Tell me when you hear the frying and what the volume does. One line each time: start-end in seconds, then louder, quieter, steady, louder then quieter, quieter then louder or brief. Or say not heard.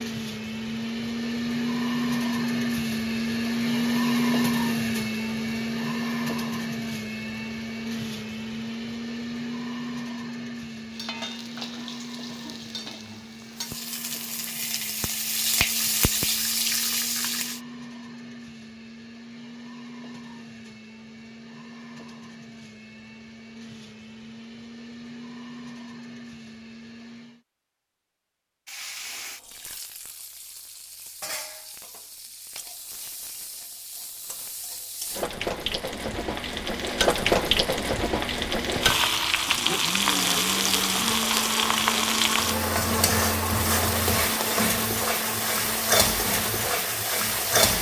10.9-17.6 louder
28.6-47.7 louder.